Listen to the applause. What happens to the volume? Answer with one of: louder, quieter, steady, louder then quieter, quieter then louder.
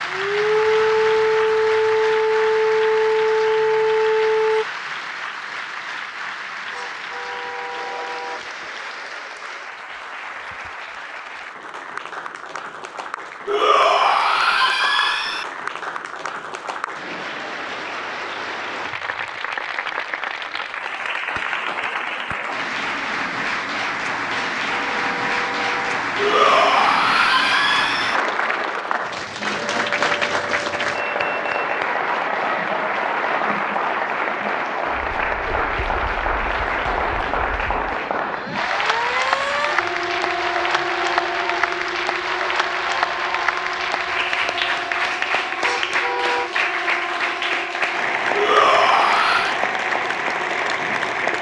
louder.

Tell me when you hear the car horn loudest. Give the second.
46 s.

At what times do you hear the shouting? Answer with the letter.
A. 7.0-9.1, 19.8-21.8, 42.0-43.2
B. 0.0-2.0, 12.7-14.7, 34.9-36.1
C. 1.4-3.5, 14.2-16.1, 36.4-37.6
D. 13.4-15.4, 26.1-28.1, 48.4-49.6
D.